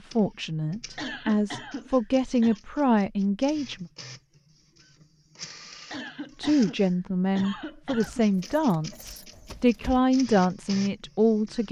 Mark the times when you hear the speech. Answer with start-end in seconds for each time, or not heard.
0.1-3.9, 6.4-11.6.